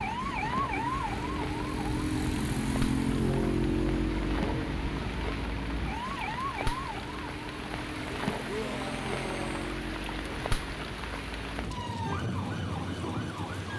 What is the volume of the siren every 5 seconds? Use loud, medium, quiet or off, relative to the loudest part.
loud, medium, medium.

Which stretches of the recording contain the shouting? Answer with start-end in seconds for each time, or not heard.
8.4-9.8.